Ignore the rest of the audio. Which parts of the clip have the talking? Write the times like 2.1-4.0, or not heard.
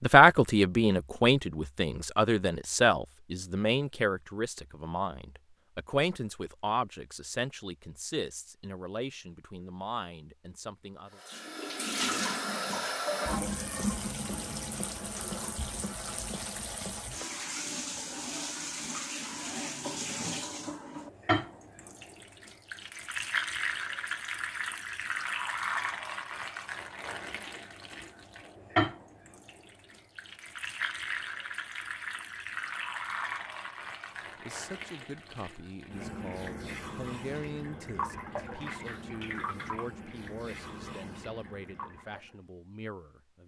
0.0-11.2, 34.4-43.4.